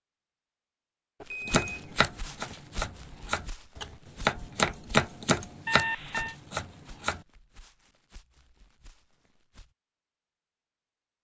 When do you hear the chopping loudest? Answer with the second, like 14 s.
5 s.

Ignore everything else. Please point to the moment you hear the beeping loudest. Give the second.
6 s.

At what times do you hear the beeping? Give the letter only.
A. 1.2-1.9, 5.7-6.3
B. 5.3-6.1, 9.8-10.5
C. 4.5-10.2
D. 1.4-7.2
A.